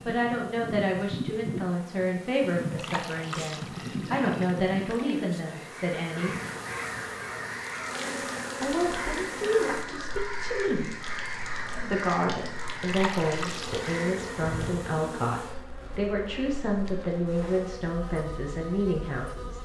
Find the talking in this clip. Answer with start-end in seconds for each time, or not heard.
0.1-6.3, 8.6-19.6.